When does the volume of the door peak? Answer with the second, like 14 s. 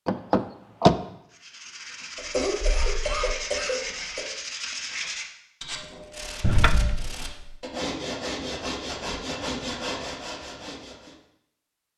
1 s.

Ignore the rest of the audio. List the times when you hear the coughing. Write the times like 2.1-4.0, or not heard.
2.1-4.2.